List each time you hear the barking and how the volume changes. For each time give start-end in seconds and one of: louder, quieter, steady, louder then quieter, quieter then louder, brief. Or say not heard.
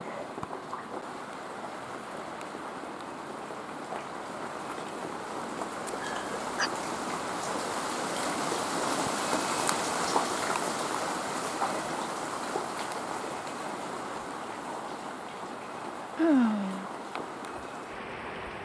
not heard.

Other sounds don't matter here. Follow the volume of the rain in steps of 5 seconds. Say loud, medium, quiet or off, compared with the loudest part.
medium, loud, loud, medium.